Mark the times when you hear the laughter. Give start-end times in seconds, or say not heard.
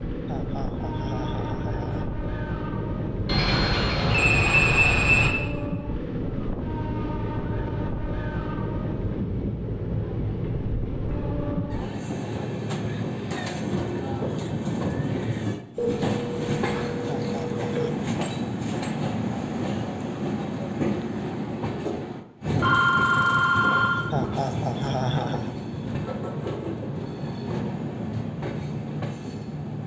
0.2-2.1, 17.1-17.9, 24.1-25.6.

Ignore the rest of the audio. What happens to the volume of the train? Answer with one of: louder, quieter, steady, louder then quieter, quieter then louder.
steady.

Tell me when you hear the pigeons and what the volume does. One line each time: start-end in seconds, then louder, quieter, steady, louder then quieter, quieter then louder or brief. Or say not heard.
not heard.